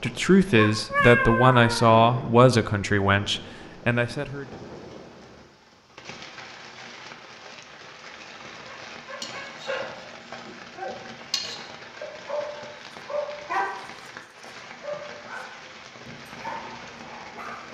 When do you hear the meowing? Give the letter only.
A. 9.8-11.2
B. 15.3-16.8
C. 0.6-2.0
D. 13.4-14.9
C.